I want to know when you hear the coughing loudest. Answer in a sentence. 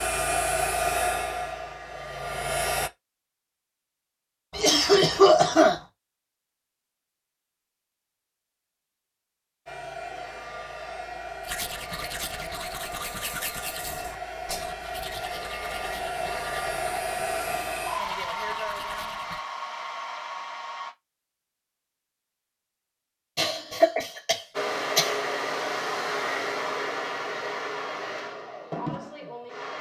The volume of the coughing peaks at 5 seconds.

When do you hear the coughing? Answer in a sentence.
The coughing can be heard from 4.5 to 5.8 s and from 23.4 to 25.1 s.